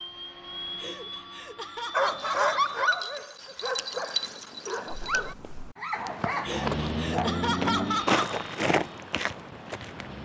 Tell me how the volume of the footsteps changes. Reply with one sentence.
The volume of the footsteps goes up, then down.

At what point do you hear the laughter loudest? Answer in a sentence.
The volume of the laughter peaks at 8 seconds.